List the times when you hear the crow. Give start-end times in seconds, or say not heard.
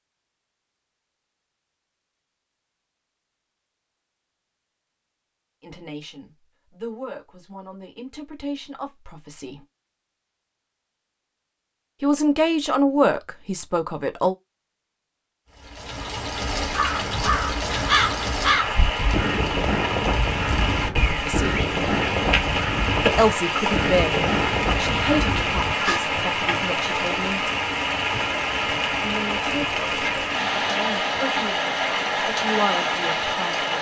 16.6-26.0.